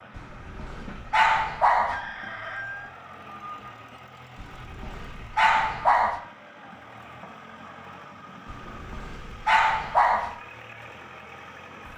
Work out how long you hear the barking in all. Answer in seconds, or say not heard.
6 s.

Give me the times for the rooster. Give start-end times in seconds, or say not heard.
1.9-3.7.